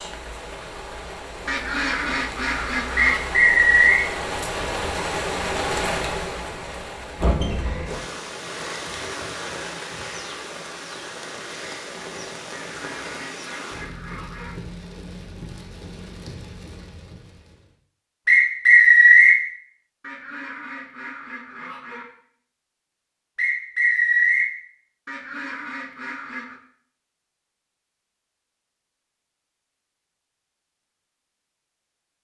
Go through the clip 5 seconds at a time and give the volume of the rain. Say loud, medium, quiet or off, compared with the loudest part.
loud, loud, medium, quiet, off, off, off.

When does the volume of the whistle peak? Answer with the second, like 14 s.
19 s.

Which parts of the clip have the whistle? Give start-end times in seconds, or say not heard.
3.0-4.0, 18.2-19.4, 23.4-24.5.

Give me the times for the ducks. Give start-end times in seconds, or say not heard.
1.4-3.2, 12.5-14.6, 20.0-22.1, 25.1-26.6.